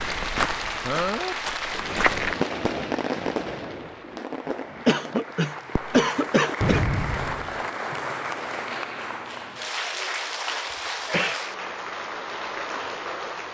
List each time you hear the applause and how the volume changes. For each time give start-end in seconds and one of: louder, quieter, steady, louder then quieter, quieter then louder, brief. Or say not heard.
0.0-13.5 quieter then louder.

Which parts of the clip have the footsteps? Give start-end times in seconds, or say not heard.
0.0-2.4.